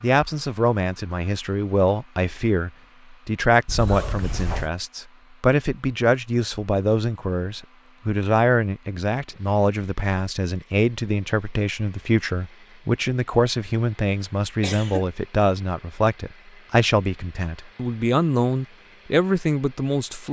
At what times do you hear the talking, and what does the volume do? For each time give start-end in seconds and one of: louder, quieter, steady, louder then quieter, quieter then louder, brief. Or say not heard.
0.0-20.2 steady.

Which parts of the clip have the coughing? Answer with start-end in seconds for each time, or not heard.
3.6-4.7, 14.6-15.1.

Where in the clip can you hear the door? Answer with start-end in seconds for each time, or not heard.
not heard.